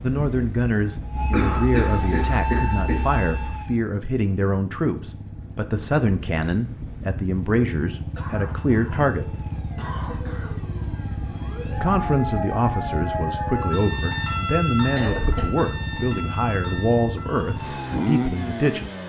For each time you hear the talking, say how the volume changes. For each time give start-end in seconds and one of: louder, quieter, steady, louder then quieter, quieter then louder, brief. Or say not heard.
0.0-9.3 steady
11.7-19.0 steady.